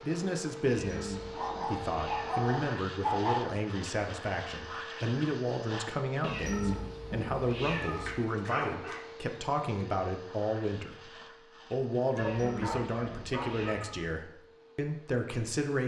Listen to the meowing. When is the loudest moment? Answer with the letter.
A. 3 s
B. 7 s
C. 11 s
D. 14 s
B.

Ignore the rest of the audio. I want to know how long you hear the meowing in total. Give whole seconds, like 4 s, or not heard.
6 s.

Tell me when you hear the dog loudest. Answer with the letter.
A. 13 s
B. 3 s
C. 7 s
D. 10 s
B.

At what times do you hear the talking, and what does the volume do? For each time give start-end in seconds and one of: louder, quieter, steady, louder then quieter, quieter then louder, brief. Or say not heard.
0.0-15.8 steady.